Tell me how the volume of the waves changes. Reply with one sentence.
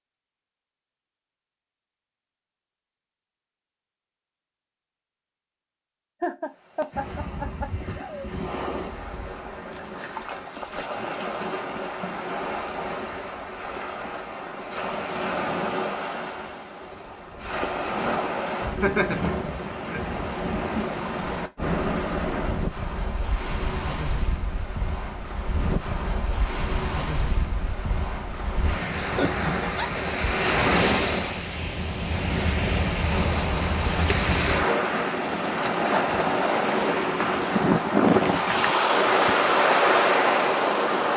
The volume of the waves goes up.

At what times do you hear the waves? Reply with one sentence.
The waves can be heard from 6.5 to 41.1 s.